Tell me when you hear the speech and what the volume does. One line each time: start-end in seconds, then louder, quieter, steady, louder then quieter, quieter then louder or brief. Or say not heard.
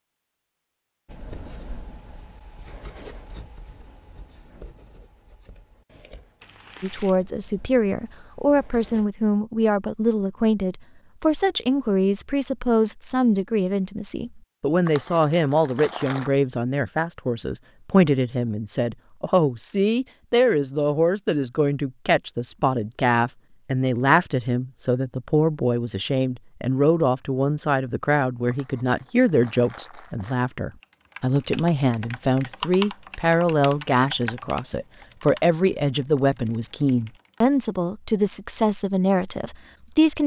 6.8-40.2 steady.